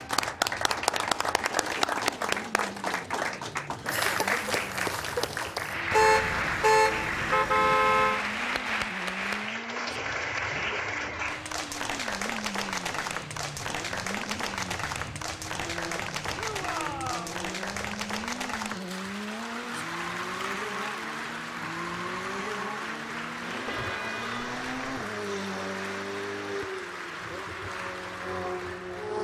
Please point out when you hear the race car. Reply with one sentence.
The race car can be heard from 0.0 to 29.1 s.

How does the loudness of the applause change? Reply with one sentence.
The volume of the applause goes down.